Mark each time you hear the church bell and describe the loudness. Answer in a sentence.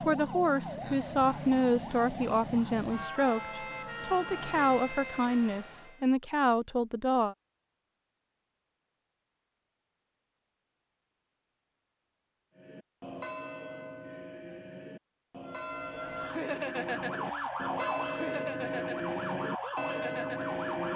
You can hear the church bell from 12.6 to 20.9 s, getting louder.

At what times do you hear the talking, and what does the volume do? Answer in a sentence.
The talking can be heard from 0.0 to 7.3 s, at a steady volume.